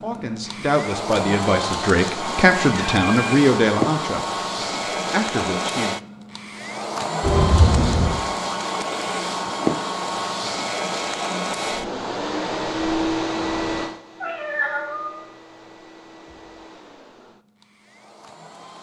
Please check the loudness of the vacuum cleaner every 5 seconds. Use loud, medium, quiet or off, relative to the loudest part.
loud, loud, loud, quiet.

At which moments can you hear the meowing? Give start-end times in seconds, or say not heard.
2.6-3.2, 7.2-8.2, 14.2-15.2.